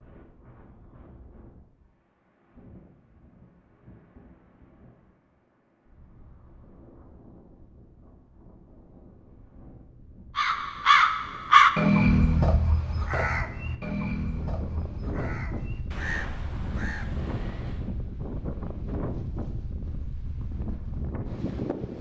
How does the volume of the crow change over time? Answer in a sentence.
The loudness of the crow goes down.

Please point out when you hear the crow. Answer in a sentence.
The crow can be heard from 10.3 to 17.9 s.